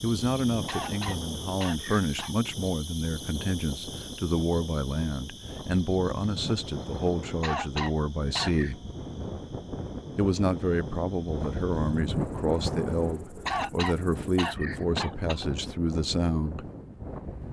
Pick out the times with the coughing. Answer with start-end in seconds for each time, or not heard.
0.7-2.4, 7.4-8.8, 13.4-15.4.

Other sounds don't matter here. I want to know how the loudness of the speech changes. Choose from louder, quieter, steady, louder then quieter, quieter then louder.
steady.